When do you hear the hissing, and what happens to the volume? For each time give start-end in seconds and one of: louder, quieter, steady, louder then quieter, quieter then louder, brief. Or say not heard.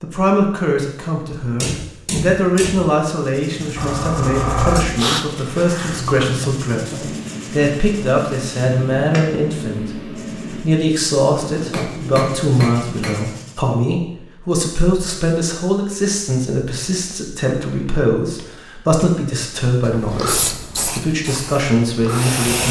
3.8-10.7 quieter
19.8-22.6 brief.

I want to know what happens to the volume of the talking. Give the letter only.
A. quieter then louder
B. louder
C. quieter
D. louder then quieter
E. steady
E.